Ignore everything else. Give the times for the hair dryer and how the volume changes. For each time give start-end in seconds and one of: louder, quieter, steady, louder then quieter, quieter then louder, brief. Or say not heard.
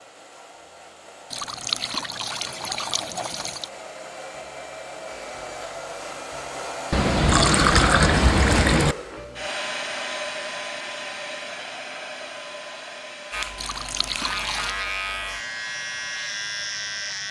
0.0-17.2 louder then quieter.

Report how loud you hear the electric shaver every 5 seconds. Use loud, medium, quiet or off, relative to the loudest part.
off, off, loud, loud.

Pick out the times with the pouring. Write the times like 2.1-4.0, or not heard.
1.3-3.7, 6.9-8.9, 13.6-14.7.